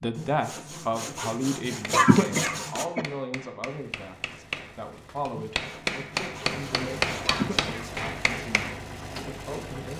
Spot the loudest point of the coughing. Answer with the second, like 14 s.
2 s.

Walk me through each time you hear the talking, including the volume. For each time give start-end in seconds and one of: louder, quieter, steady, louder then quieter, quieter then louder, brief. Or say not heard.
0.0-9.9 quieter.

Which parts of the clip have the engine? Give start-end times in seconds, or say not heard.
3.6-9.9.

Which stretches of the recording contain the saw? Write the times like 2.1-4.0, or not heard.
0.1-2.9, 5.3-7.4.